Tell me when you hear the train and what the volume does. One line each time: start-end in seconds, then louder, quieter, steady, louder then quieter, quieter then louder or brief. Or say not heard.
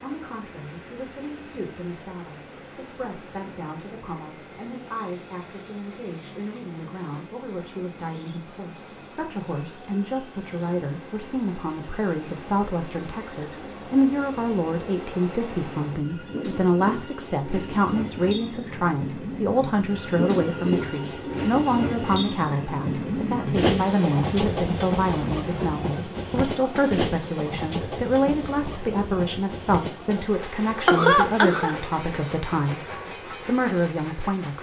0.0-34.5 louder then quieter.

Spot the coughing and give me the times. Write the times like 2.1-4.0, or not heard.
30.9-31.8.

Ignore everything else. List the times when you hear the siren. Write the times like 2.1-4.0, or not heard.
not heard.